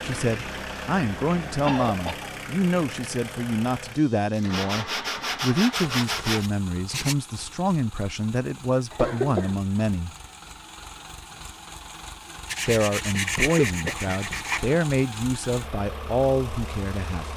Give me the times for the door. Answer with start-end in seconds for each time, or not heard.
not heard.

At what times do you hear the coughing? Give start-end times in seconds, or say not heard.
1.6-2.3, 8.9-9.6, 13.7-14.1.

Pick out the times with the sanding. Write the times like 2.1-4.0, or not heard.
4.5-7.2, 12.4-14.8.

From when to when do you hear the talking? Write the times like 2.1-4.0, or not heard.
0.0-10.2, 12.7-17.3.